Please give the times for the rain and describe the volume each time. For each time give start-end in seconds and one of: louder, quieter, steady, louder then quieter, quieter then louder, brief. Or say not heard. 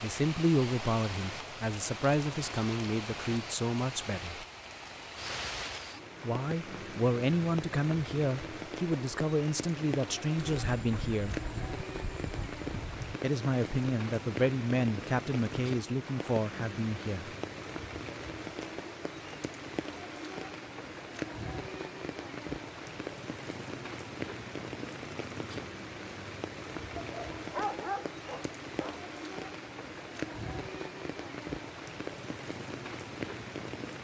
0.0-33.9 steady.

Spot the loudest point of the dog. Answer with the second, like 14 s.
28 s.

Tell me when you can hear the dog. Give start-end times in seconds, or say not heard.
26.9-29.0.